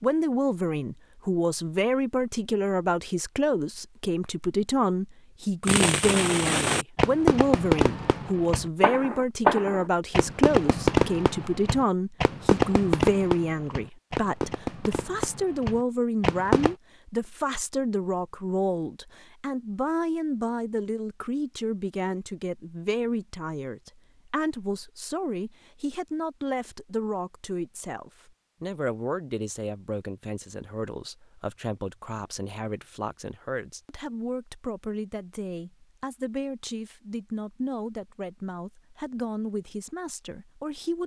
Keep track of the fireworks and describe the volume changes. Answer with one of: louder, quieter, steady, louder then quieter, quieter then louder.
quieter.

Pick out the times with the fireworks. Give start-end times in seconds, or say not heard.
5.7-16.8.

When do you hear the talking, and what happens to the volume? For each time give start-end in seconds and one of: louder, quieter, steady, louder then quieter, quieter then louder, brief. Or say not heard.
0.0-41.0 quieter.